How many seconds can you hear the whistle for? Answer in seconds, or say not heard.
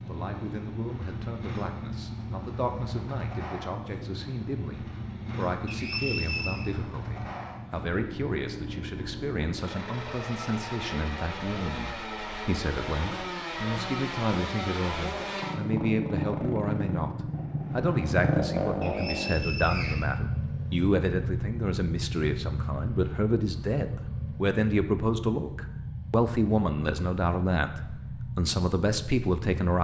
2 s.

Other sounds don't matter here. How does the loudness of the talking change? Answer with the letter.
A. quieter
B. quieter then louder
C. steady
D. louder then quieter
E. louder
E.